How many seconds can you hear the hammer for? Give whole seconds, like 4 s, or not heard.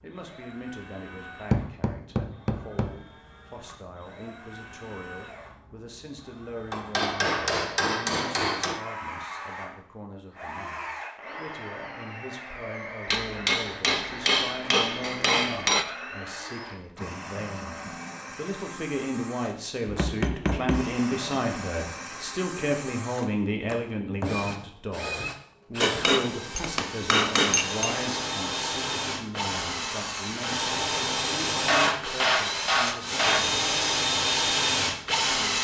12 s.